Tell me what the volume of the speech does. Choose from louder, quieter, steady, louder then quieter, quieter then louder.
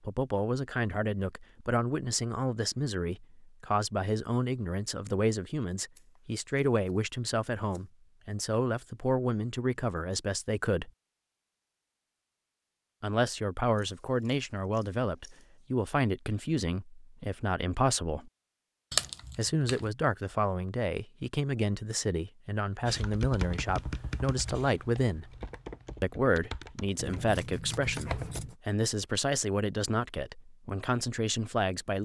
steady.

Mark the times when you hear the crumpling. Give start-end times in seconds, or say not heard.
18.9-19.9.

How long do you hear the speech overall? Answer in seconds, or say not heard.
28 s.